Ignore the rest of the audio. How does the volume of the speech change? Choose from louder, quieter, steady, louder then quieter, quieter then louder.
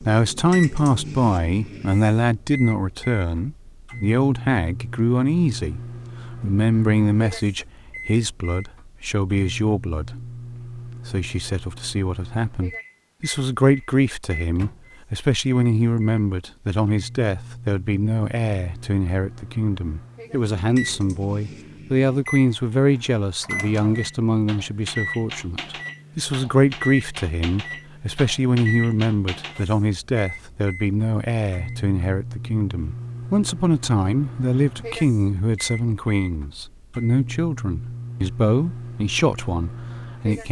steady.